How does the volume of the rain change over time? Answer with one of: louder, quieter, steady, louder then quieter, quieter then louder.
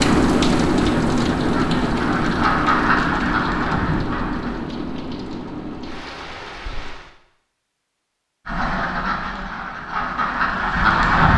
quieter.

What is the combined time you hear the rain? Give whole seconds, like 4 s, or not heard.
7 s.